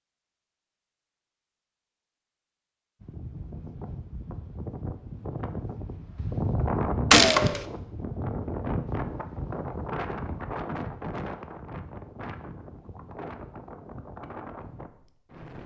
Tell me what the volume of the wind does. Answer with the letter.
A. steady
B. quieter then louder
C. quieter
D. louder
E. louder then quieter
E.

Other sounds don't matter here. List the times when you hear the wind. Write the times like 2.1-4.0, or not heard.
3.0-15.6.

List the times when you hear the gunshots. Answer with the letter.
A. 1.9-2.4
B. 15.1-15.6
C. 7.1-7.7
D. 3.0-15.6
C.